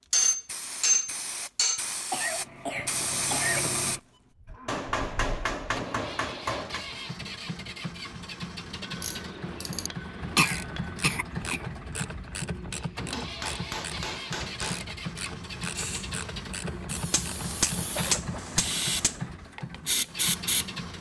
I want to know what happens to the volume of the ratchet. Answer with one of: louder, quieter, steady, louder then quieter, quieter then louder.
steady.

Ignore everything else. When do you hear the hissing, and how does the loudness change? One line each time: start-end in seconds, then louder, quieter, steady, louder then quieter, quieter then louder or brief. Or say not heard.
0.0-4.0 louder
15.6-20.6 louder.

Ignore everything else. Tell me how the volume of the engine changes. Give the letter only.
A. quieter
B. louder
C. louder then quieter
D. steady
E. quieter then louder
D.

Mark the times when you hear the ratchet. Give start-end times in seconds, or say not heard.
8.9-18.4.